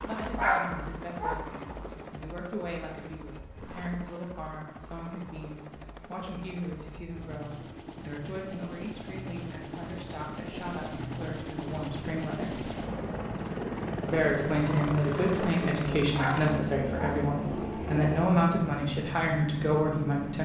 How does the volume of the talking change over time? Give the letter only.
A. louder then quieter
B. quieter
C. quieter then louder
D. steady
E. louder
E.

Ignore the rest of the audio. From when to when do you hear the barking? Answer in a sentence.
The barking can be heard from 0.3 to 1.4 s and from 16.1 to 17.1 s.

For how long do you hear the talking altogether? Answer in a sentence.
The talking can be heard for 19 seconds in total.